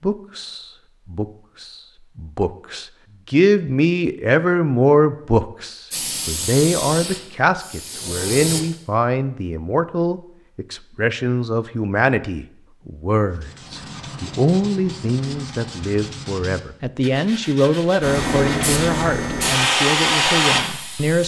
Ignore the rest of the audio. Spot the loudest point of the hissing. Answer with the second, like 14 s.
20 s.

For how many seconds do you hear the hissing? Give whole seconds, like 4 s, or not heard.
6 s.